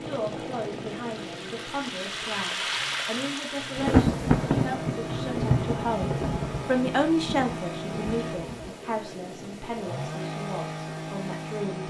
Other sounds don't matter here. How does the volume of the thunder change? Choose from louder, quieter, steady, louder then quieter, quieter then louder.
quieter.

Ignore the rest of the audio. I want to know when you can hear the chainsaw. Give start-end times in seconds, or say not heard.
0.0-11.8.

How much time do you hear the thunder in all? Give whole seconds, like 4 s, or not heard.
5 s.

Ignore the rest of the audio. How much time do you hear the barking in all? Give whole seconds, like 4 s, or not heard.
not heard.